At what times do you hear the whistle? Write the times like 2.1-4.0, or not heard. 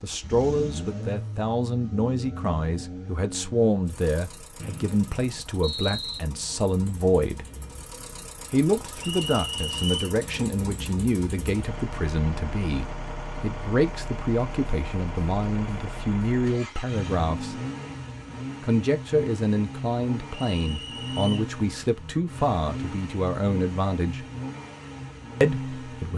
4.5-6.2, 9.0-10.2, 20.4-21.4.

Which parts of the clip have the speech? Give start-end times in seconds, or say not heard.
0.0-7.5, 8.5-17.6, 18.6-24.2, 25.4-26.1.